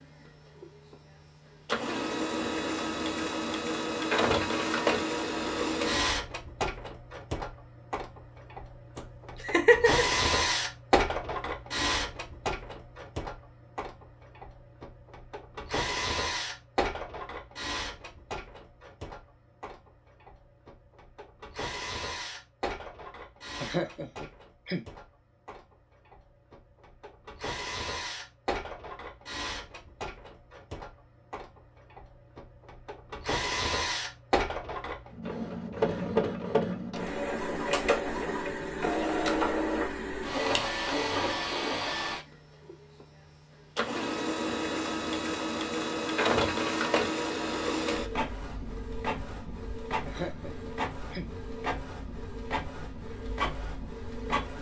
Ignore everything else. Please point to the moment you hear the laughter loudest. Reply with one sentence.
The loudest moment of the laughter is at 10 seconds.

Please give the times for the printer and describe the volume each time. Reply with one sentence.
You can hear the printer from 0.0 to 54.5 s, getting quieter then louder.